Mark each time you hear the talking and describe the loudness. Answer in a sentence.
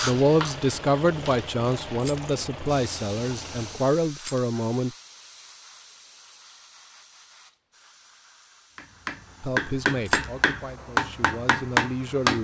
The talking can be heard from 0.0 to 4.9 s, getting quieter then louder; and briefly from 9.4 to 12.3 s.